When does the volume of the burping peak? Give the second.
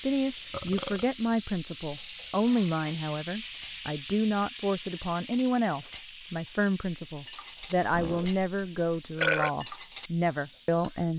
9 s.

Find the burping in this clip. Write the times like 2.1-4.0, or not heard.
0.5-1.1, 7.5-9.5.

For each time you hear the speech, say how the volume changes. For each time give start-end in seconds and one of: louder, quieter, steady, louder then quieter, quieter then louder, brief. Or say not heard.
0.0-11.1 steady.